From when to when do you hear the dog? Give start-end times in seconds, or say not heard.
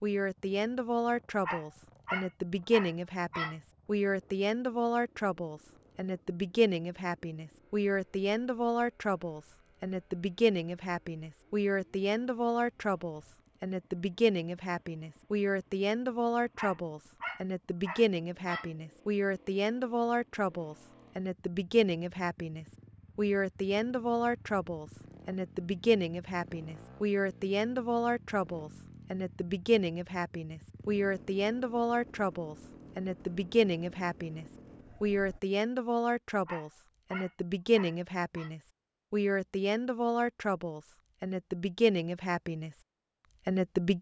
1.4-3.5, 16.6-18.7, 36.5-38.5.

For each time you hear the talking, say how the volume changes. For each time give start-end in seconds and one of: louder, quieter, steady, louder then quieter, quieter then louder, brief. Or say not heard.
0.0-42.7 steady
43.5-43.9 brief.